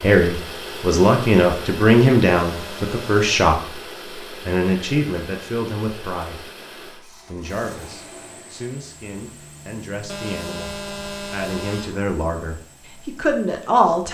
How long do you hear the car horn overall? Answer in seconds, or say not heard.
3 s.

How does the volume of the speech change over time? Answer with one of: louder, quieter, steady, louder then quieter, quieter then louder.
quieter then louder.